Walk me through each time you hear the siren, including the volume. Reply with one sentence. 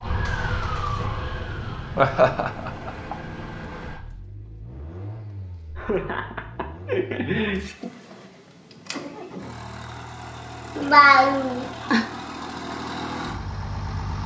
The siren can be heard from 0.0 to 4.0 s, getting quieter.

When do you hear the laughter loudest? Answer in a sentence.
The volume of the laughter peaks at 11 seconds.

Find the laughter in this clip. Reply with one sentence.
The laughter can be heard from 1.9 to 3.1 s, from 5.8 to 7.6 s and from 10.8 to 12.1 s.